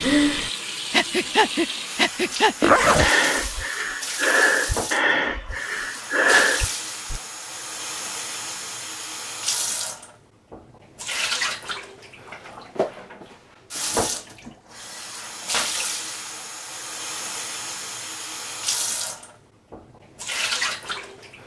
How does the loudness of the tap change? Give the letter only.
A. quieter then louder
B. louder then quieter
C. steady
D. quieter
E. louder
C.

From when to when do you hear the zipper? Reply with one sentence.
The zipper can be heard from 2.6 to 3.1 s.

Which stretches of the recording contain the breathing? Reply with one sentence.
You can hear the breathing from 0.0 to 7.2 s.